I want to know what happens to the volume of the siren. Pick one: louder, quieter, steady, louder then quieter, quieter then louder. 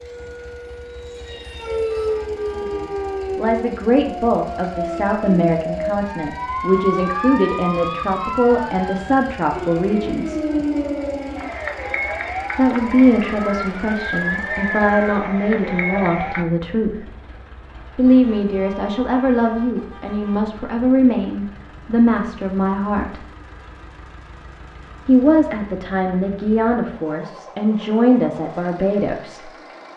steady.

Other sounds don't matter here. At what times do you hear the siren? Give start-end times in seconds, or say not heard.
0.0-16.4.